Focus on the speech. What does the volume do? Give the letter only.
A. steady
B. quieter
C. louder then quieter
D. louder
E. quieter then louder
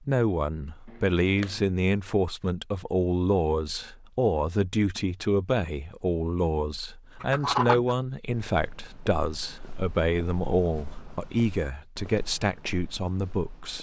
A.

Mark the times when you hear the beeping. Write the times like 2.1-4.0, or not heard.
not heard.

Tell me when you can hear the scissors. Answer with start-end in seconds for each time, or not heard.
0.9-1.6, 7.2-8.0.